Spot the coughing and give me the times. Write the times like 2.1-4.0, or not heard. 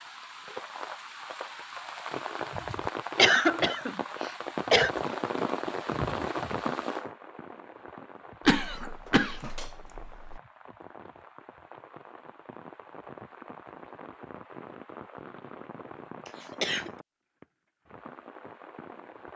3.1-4.9, 8.4-10.4, 16.2-16.9.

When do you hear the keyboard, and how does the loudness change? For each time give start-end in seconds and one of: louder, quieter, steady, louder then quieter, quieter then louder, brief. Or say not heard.
not heard.